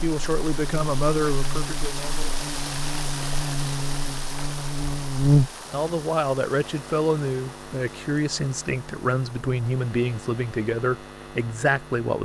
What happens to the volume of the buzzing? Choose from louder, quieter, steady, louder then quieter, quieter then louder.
louder then quieter.